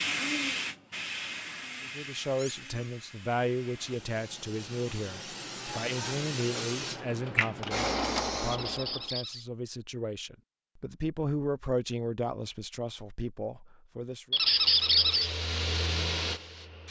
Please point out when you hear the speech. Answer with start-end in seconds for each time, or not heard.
1.8-14.4.